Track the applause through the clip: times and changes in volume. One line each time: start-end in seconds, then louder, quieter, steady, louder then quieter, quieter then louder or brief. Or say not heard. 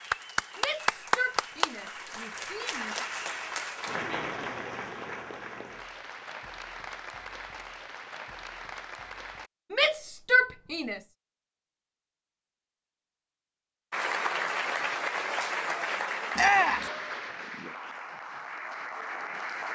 0.0-9.5 quieter
13.9-19.6 quieter.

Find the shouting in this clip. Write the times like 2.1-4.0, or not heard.
0.6-3.0, 9.7-11.0, 16.4-16.9.